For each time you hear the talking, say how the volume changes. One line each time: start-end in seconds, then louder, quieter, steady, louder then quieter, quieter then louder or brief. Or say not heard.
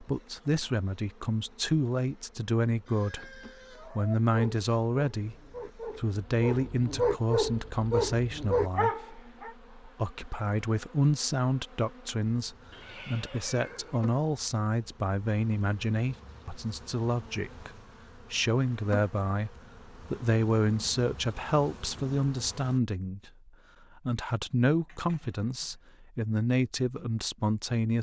0.0-27.9 steady.